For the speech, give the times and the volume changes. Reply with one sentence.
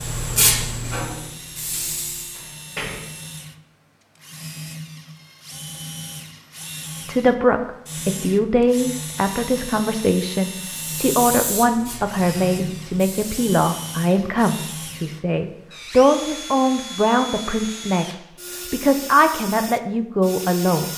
The speech can be heard from 7.0 to 20.9 s, at a steady volume.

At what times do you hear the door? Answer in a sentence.
The door can be heard from 2.4 to 3.1 s.